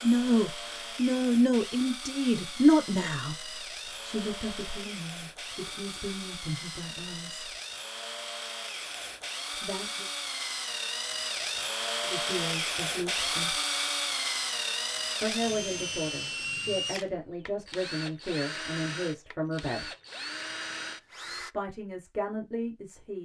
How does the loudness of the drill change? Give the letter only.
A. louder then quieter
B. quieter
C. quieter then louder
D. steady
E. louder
A.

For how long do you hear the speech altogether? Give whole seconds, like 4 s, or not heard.
16 s.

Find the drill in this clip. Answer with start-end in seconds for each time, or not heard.
0.0-21.6.